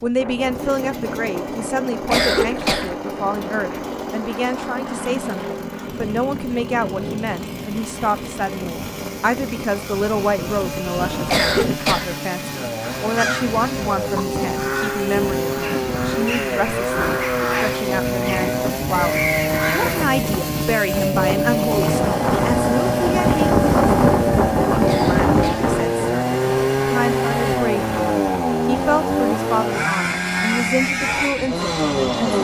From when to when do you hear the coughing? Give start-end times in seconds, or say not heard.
2.0-3.0, 11.2-12.2, 24.8-25.7.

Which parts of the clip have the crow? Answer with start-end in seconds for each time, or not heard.
12.8-20.2.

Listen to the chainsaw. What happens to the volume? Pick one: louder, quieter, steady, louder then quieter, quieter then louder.
louder.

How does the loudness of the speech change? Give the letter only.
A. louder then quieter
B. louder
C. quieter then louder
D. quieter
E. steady
E.